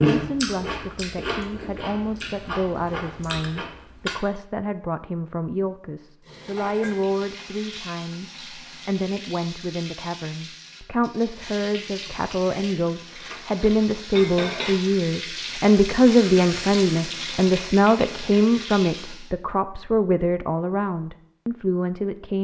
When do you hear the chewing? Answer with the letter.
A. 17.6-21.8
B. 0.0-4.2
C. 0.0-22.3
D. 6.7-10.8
B.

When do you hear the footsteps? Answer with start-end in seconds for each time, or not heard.
not heard.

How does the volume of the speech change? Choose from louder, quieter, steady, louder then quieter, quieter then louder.
louder.